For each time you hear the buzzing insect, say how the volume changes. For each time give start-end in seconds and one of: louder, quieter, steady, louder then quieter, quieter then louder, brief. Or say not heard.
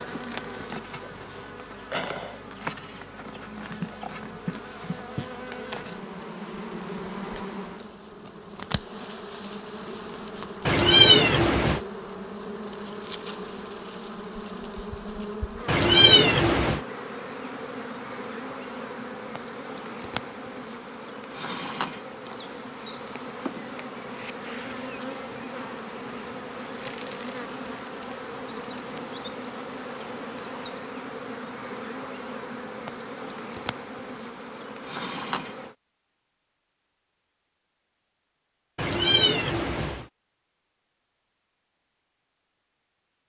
0.0-35.8 steady.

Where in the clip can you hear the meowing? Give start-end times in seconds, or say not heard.
10.7-11.8, 15.7-16.8, 38.8-40.0.